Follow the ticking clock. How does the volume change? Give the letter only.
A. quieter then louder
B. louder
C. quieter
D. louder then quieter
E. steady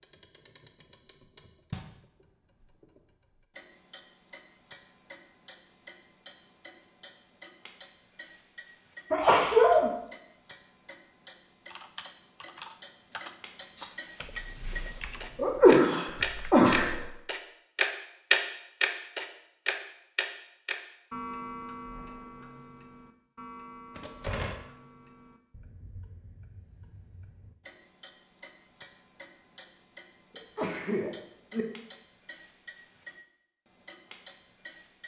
D.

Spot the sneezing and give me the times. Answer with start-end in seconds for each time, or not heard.
9.1-9.9, 15.3-17.1, 30.4-31.6.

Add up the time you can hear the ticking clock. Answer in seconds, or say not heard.
35 s.